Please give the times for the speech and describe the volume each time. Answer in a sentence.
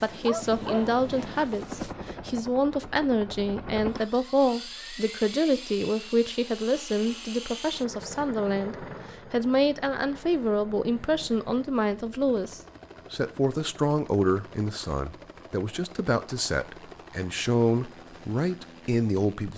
You can hear the speech from 0.0 to 19.5 s, at a steady volume.